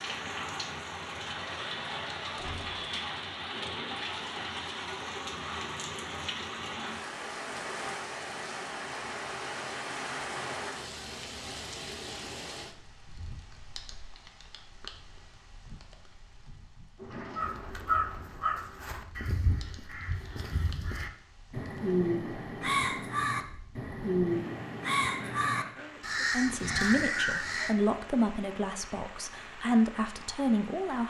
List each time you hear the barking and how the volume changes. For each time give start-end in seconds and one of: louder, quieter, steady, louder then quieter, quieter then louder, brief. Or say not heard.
not heard.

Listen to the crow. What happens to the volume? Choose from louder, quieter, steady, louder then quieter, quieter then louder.
quieter then louder.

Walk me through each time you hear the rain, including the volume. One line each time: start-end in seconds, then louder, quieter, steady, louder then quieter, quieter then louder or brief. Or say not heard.
0.0-31.0 quieter then louder.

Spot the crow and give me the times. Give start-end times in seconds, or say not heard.
17.4-27.8.